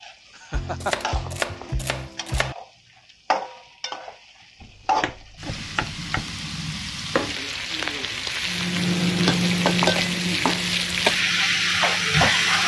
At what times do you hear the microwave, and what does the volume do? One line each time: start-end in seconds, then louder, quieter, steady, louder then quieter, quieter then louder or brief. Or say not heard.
8.4-12.6 quieter.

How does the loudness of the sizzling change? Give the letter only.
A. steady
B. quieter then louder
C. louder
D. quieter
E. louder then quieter
C.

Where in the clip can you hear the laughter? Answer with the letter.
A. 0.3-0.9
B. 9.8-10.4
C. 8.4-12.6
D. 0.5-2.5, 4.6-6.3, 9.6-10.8
A.